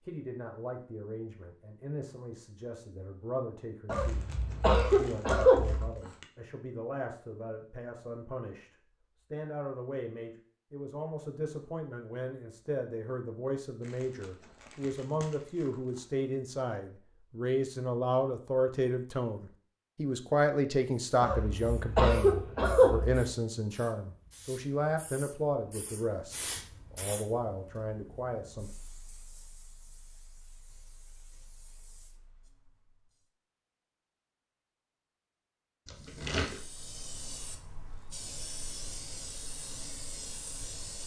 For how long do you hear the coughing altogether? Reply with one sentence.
You can hear the coughing for 4 seconds altogether.